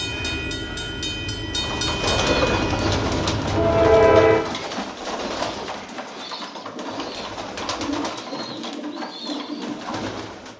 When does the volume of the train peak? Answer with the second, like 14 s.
4 s.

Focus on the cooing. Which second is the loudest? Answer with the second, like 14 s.
2 s.